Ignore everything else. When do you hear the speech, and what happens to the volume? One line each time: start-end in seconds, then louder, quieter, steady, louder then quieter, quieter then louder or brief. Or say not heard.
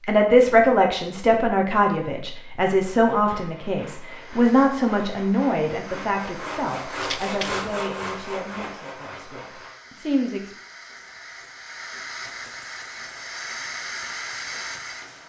0.1-10.6 quieter.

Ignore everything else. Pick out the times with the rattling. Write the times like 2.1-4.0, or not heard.
7.0-7.7.